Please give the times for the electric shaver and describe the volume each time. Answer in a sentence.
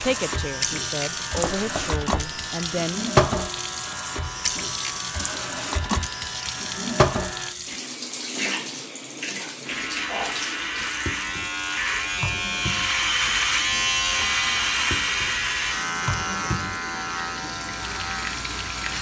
The electric shaver can be heard from 0.0 to 7.5 s, at a steady volume; and from 9.6 to 18.9 s, getting louder then quieter.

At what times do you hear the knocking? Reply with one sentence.
The knocking can be heard from 1.4 to 2.4 s.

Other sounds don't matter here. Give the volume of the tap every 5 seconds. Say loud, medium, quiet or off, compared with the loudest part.
loud, loud, medium, medium.